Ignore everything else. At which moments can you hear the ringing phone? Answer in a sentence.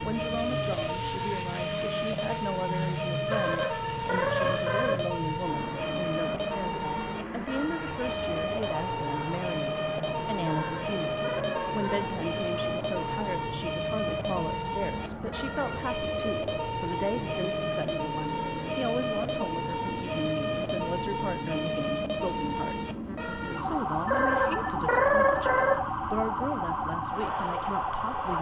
You can hear the ringing phone from 3.2 to 5.0 s, from 10.4 to 12.1 s and from 24.1 to 25.8 s.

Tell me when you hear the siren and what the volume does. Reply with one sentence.
You can hear the siren from 0.0 to 28.3 s, at a steady volume.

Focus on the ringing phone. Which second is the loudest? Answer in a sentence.
The loudest moment of the ringing phone is at 25 seconds.